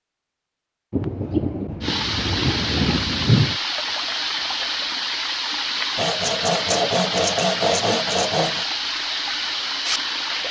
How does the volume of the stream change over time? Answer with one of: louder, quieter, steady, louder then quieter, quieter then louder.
steady.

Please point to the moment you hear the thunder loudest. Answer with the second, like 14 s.
3 s.